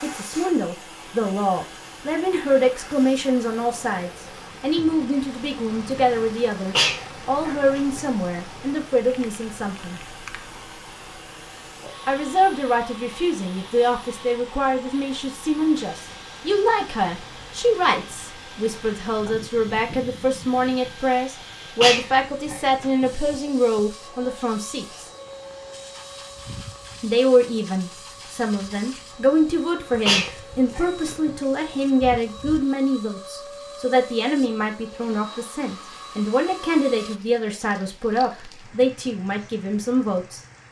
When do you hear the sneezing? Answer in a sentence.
The sneezing can be heard from 6.8 to 8.0 s, from 21.8 to 23.1 s and from 30.1 to 31.4 s.